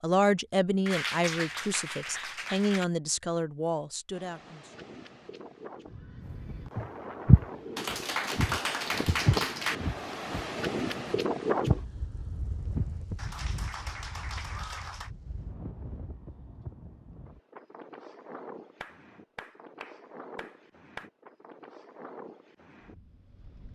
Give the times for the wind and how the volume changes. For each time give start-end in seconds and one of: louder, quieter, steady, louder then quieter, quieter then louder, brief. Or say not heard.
4.1-23.7 louder then quieter.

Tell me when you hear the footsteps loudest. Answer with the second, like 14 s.
7 s.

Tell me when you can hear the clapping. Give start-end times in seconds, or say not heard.
0.8-2.9, 7.8-9.8, 13.2-15.1, 18.8-21.1.